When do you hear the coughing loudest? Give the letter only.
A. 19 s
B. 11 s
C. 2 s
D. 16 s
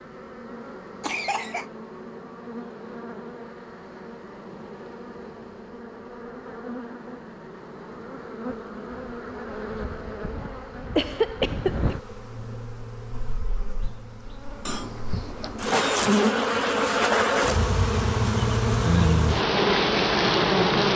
B.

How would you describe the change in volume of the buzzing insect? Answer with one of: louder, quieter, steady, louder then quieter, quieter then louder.
louder.